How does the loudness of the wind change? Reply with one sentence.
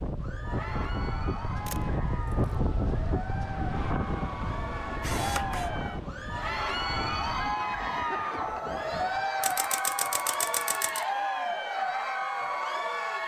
The volume of the wind goes down.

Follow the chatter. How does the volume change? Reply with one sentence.
The volume of the chatter goes up.